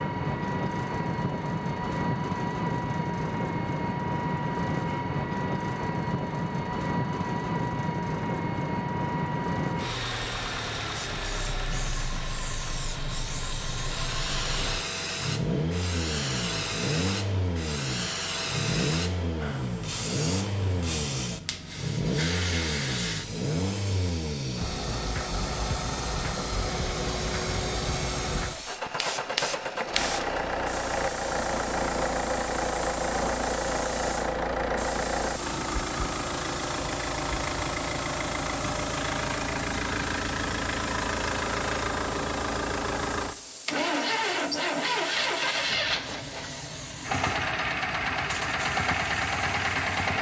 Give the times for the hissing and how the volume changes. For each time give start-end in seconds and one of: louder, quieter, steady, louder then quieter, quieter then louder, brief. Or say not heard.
10.9-50.0 quieter.